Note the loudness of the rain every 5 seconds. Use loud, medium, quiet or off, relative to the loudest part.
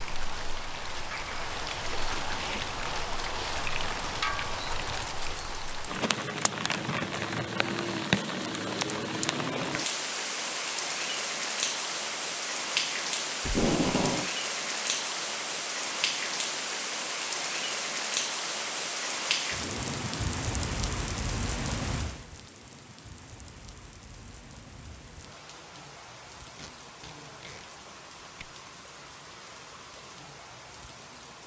loud, loud, loud, loud, medium, quiet, quiet.